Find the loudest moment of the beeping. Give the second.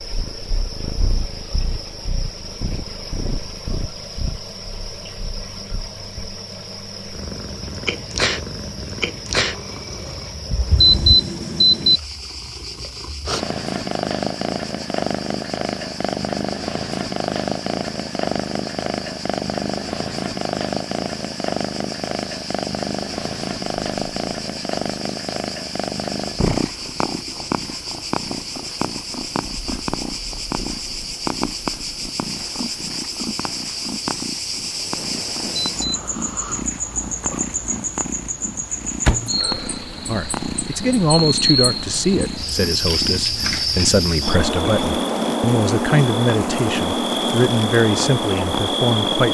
11 s.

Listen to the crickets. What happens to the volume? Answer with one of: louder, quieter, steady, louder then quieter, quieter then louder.
louder.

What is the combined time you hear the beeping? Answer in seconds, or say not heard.
2 s.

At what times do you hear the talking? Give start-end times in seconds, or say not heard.
40.0-49.2.